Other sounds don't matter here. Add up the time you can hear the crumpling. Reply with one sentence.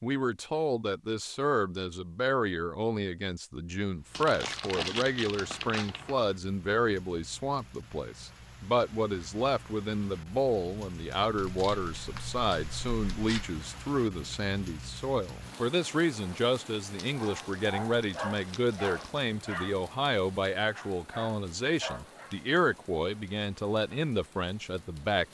You can hear the crumpling for 7 seconds altogether.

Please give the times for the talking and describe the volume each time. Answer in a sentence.
You can hear the talking from 0.0 to 25.2 s, at a steady volume.